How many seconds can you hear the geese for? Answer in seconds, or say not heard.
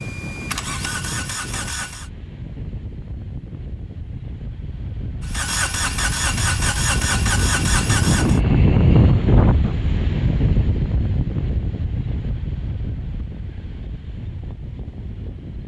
not heard.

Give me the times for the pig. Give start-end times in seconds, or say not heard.
not heard.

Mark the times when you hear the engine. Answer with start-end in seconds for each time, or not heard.
0.0-2.1, 5.2-8.4.